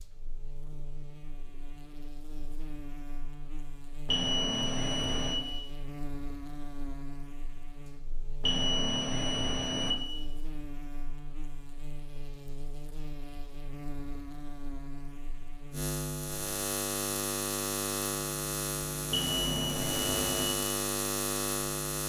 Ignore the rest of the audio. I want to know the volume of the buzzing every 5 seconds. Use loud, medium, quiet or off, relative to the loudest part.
quiet, quiet, quiet, loud, loud.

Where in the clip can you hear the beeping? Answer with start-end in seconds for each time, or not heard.
4.0-5.4, 8.4-9.9, 19.1-20.5.